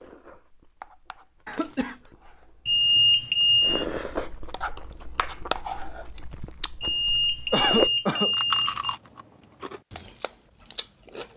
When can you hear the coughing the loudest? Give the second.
8 s.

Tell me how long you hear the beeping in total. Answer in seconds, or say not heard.
3 s.